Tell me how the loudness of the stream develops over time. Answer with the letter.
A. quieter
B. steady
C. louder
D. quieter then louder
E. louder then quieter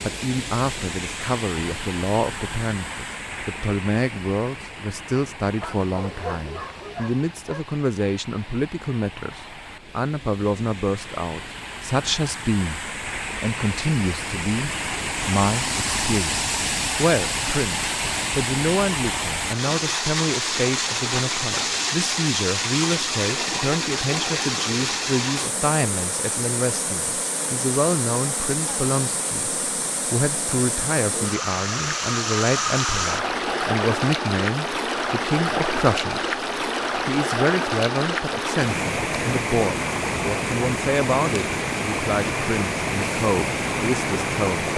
C.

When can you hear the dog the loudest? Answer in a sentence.
The loudest moment of the dog is at 6 seconds.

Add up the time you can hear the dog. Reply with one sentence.
The dog can be heard for 2 seconds in total.